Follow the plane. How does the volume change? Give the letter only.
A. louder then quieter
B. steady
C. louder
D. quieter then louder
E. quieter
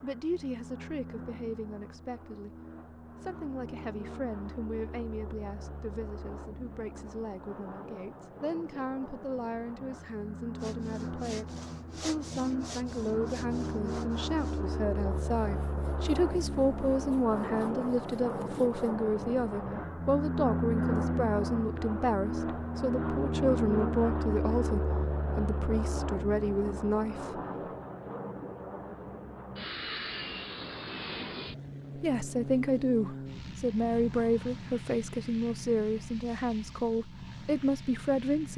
A.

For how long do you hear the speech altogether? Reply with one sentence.
You can hear the speech for 33 seconds altogether.